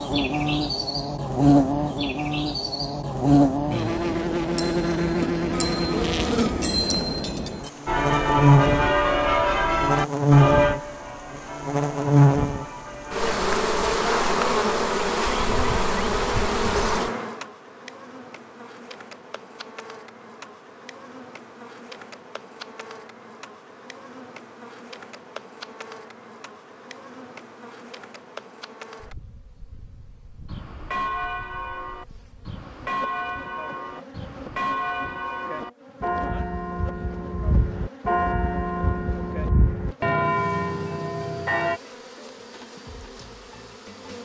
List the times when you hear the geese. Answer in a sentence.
The geese can't be heard in this clip.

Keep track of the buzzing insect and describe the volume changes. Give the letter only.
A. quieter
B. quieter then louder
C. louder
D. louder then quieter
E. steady
A.